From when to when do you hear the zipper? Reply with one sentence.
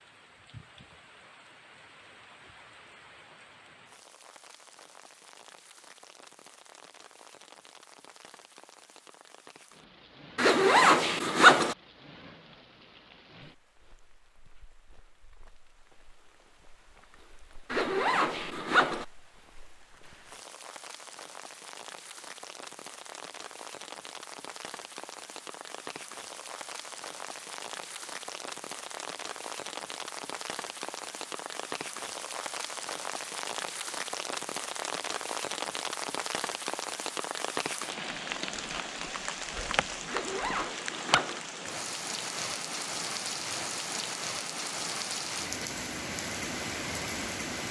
The zipper can be heard from 10.3 to 11.8 s, from 17.7 to 19.1 s and from 40.0 to 41.5 s.